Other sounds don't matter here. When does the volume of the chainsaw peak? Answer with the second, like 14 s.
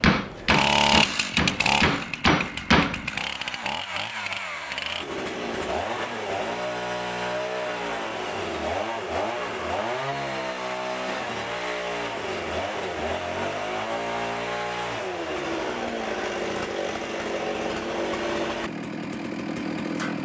1 s.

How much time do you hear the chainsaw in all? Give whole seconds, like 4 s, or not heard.
20 s.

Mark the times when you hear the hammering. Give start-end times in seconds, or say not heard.
0.0-3.1.